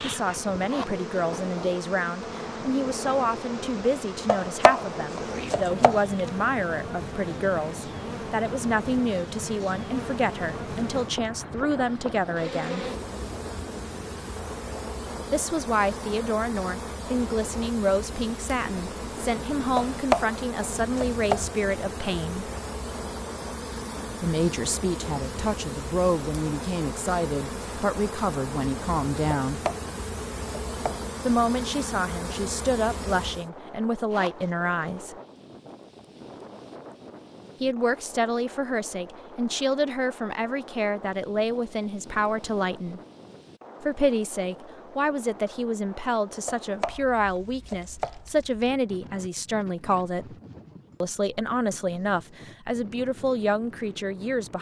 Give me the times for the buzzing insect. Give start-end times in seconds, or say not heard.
0.0-33.5.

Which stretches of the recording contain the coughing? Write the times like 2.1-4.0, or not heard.
not heard.